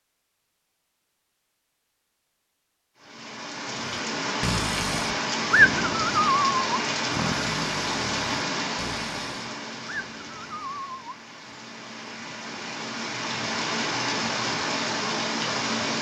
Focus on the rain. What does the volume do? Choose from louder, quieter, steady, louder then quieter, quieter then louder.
quieter then louder.